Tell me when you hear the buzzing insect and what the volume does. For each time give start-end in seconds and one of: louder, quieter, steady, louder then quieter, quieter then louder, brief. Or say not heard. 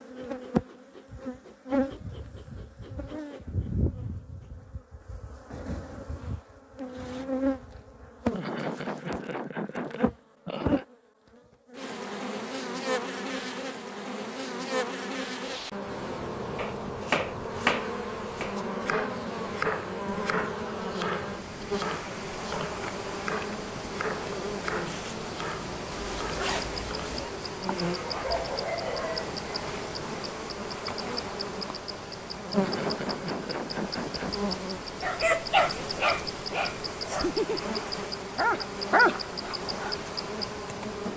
0.0-41.1 steady.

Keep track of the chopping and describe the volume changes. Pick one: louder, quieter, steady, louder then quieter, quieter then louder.
quieter.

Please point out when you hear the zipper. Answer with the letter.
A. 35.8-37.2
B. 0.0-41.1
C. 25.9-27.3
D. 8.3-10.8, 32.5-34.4
C.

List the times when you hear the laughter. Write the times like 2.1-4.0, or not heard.
8.3-10.8, 32.5-34.4.